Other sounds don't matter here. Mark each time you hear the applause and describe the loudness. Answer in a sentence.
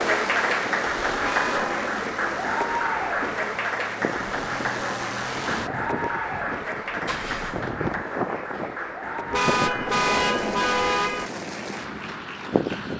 The applause can be heard from 0.0 to 12.9 s, getting quieter.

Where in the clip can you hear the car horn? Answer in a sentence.
The car horn can be heard from 1.2 to 1.8 s and from 9.3 to 11.3 s.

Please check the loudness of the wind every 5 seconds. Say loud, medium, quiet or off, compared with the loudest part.
medium, loud, loud.